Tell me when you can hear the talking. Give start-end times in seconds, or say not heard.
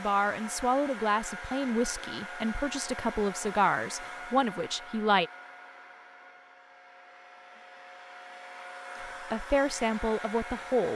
0.0-5.3, 9.0-10.9.